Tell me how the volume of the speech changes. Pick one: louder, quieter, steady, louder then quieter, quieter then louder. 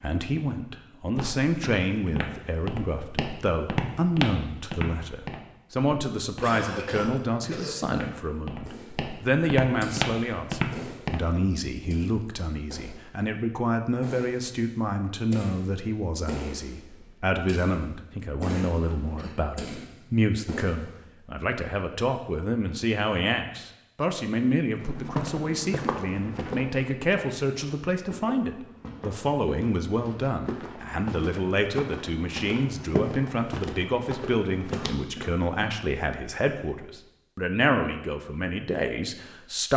steady.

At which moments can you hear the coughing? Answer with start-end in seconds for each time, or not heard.
6.4-7.8, 18.4-19.4, 35.0-35.9.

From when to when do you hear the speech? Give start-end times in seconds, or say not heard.
0.0-39.7.